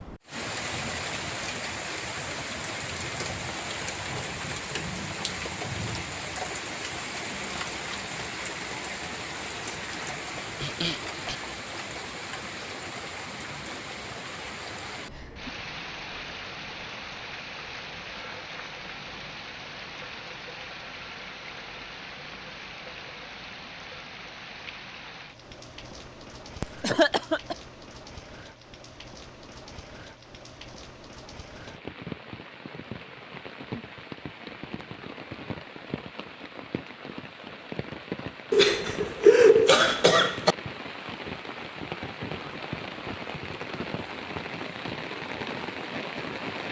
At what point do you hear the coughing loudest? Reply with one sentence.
The volume of the coughing peaks at 39 seconds.